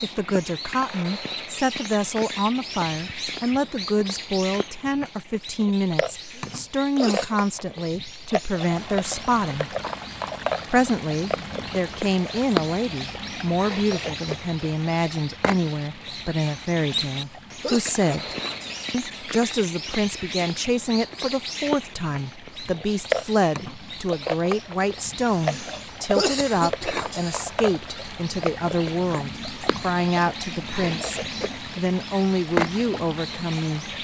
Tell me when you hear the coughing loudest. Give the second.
26 s.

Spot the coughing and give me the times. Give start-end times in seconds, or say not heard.
6.2-7.3, 16.9-18.9, 25.3-27.9.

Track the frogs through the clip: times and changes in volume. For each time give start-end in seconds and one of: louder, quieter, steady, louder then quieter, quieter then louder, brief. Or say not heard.
not heard.